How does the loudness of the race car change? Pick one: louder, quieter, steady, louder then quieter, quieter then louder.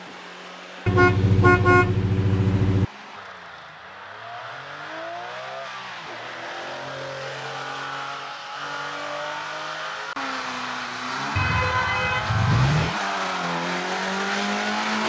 louder.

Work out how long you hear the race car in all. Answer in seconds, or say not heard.
15 s.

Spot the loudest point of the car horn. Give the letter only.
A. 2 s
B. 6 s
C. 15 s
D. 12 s
A.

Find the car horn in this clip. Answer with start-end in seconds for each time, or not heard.
0.8-2.9, 11.3-12.9.